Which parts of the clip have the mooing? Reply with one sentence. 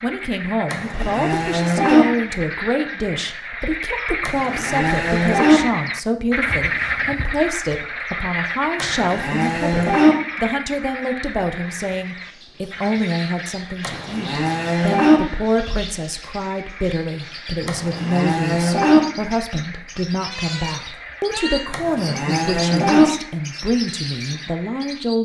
The mooing can be heard from 0.7 to 2.0 s, from 4.2 to 5.6 s, from 8.8 to 10.2 s, from 13.8 to 15.2 s, from 17.6 to 19.0 s and from 21.7 to 23.1 s.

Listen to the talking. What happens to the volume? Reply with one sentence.
The loudness of the talking stays about the same.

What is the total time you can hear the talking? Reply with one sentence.
You can hear the talking for 25 seconds altogether.